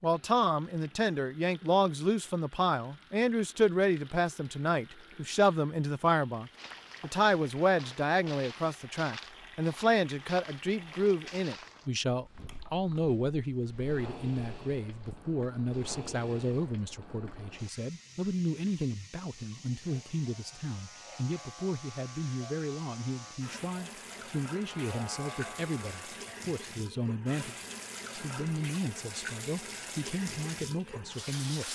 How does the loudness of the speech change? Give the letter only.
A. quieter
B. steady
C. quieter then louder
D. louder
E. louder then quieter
A.